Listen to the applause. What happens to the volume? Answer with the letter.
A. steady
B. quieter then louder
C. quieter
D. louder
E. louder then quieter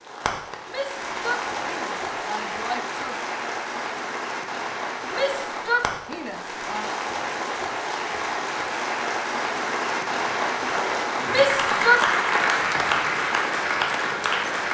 D.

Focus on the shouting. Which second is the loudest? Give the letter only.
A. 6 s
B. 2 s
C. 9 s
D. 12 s
D.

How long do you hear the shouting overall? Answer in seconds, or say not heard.
5 s.